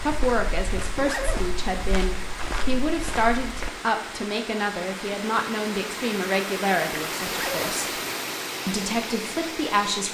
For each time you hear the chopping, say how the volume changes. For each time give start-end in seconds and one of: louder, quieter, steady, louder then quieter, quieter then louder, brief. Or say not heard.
not heard.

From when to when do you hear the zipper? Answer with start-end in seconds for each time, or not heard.
0.9-1.4, 7.2-7.7.